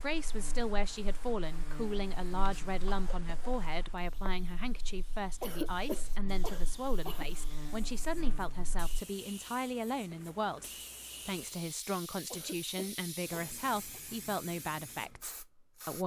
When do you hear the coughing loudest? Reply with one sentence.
The loudest moment of the coughing is at 6 seconds.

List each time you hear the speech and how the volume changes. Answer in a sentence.
You can hear the speech from 0.0 to 16.0 s, at a steady volume.